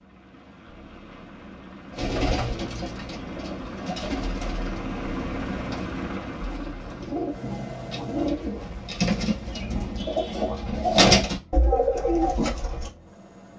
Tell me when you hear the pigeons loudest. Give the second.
11 s.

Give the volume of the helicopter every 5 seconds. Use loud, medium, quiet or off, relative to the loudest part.
loud, loud, quiet.